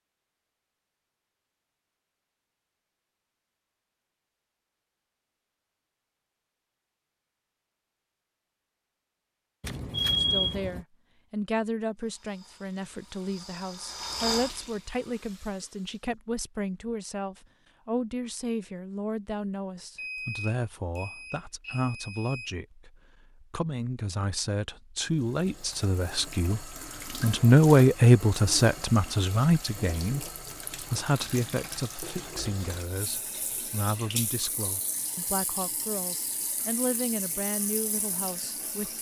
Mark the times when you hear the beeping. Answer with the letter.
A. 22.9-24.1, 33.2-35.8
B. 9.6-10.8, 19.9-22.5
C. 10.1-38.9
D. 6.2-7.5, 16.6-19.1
B.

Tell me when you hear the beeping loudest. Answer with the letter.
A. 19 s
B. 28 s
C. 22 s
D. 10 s
D.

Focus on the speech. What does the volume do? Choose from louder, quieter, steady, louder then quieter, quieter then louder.
louder then quieter.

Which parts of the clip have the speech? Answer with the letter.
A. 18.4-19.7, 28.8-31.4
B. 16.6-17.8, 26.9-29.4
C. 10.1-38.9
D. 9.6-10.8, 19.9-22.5
C.